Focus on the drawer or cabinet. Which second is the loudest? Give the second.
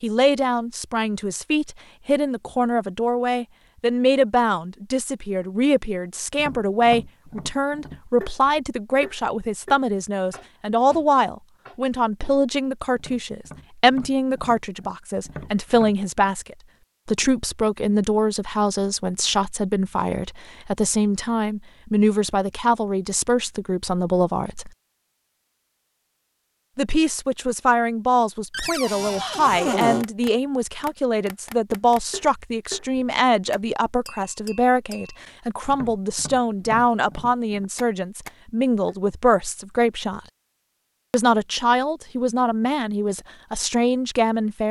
30 s.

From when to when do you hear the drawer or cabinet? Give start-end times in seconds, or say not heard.
28.5-30.1.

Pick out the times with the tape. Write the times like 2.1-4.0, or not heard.
not heard.